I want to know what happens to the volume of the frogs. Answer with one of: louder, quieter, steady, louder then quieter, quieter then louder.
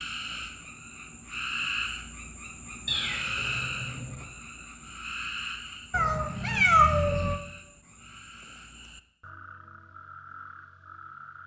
quieter.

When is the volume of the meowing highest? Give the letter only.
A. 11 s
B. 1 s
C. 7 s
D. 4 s
C.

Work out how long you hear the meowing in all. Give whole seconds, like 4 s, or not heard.
3 s.